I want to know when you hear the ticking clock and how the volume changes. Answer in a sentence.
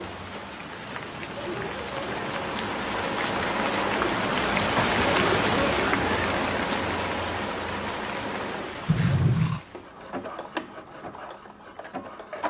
You can't hear the ticking clock here.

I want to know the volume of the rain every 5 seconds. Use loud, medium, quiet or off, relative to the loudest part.
loud, loud, off.